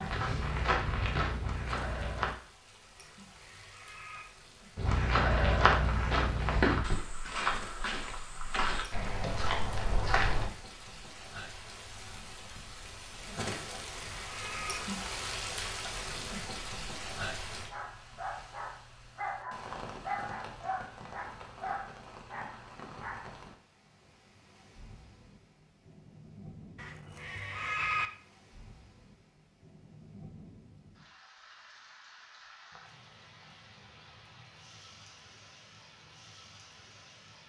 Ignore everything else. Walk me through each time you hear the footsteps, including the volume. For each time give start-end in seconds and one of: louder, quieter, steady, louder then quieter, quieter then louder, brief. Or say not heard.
0.0-2.4 brief
4.8-10.4 quieter.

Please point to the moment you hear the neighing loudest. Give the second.
28 s.